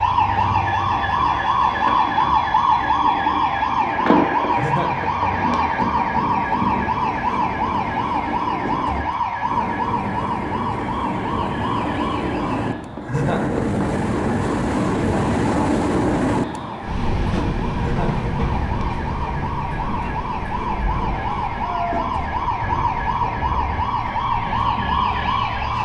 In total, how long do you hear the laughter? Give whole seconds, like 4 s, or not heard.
2 s.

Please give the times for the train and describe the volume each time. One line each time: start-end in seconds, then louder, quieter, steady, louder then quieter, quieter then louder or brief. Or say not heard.
0.0-25.8 louder then quieter.